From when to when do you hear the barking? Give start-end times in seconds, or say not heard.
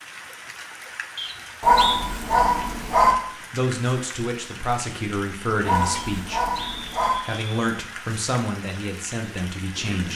1.6-3.1, 5.7-7.2.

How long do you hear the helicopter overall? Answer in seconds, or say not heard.
not heard.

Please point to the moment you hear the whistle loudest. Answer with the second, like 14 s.
2 s.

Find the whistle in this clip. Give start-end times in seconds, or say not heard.
1.1-2.0, 6.0-7.5.